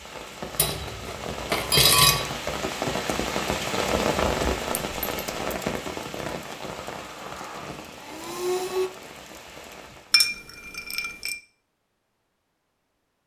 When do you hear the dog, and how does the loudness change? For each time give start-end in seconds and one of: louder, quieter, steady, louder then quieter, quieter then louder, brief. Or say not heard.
not heard.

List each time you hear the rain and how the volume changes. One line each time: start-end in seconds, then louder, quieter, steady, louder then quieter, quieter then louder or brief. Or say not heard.
0.0-10.2 louder then quieter.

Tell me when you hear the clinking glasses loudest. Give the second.
2 s.